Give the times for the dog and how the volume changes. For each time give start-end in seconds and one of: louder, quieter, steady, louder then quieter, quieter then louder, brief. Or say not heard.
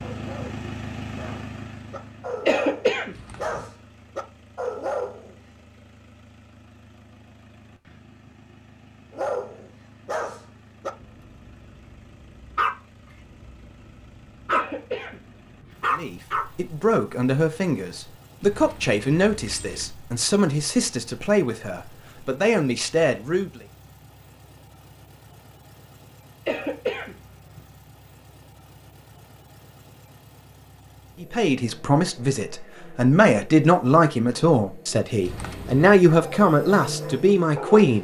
0.0-5.3 louder
9.1-16.4 quieter then louder
36.0-37.9 brief.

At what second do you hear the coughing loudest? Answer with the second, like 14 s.
3 s.